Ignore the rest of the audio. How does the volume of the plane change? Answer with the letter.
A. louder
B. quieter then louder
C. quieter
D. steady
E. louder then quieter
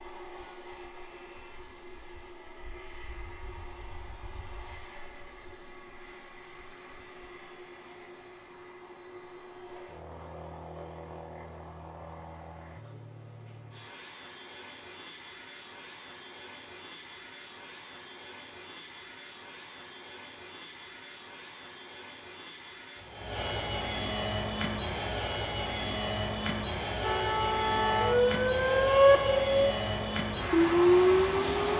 A.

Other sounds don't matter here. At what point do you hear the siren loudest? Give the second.
29 s.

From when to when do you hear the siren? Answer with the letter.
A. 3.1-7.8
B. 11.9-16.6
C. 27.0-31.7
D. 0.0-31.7
C.